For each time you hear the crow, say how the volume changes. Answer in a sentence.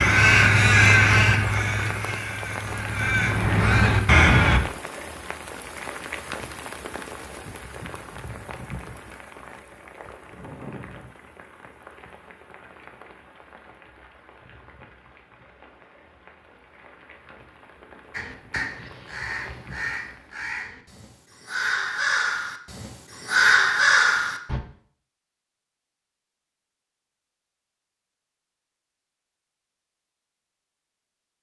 The crow can be heard from 0.0 to 4.6 s, getting quieter then louder; and from 18.1 to 24.6 s, getting louder.